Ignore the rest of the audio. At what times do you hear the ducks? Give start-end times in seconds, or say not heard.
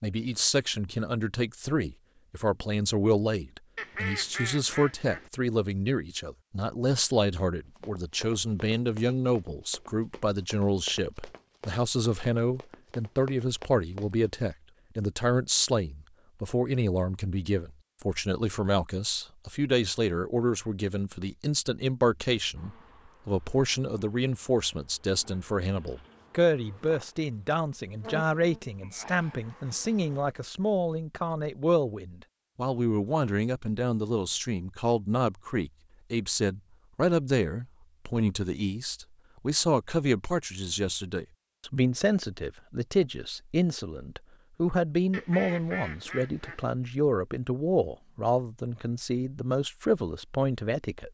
3.8-5.3, 45.1-46.6.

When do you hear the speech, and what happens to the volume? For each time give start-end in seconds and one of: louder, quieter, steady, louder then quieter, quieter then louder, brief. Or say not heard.
0.0-51.0 steady.